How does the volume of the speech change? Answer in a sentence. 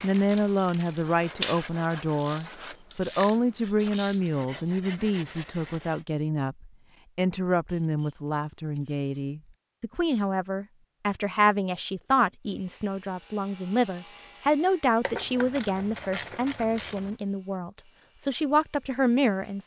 The loudness of the speech stays about the same.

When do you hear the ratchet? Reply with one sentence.
You can hear the ratchet from 1.4 to 4.2 s, from 7.7 to 9.2 s and from 15.0 to 17.1 s.